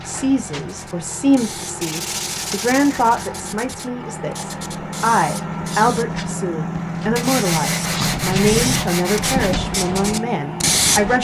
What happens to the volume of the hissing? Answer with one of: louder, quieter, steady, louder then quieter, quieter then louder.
louder.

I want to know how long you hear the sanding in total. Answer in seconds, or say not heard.
4 s.